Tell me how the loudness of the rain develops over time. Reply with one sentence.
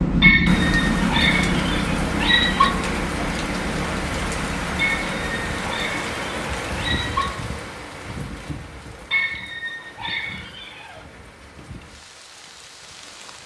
The volume of the rain goes down.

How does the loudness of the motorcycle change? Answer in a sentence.
The loudness of the motorcycle goes down.